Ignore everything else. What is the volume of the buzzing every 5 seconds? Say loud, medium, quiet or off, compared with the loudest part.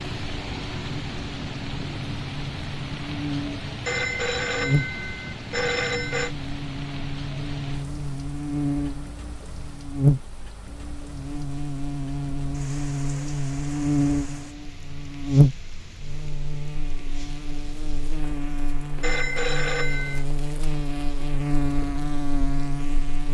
medium, medium, loud, loud, loud.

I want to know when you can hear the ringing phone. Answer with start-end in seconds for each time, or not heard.
3.9-6.3, 19.0-20.2.